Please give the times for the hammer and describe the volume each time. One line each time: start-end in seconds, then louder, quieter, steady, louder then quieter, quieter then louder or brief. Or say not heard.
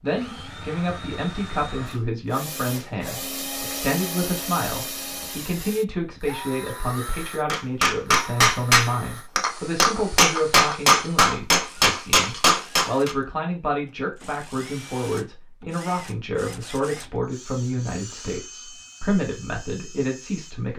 7.5-13.2 quieter then louder.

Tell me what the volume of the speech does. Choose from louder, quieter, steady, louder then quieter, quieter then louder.
steady.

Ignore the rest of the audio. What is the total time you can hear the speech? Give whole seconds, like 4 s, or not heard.
21 s.